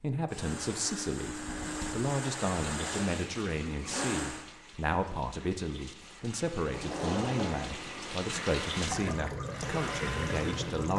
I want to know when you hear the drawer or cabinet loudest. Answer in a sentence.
The volume of the drawer or cabinet peaks at 7 seconds.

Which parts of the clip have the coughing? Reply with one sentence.
You can't hear the coughing here.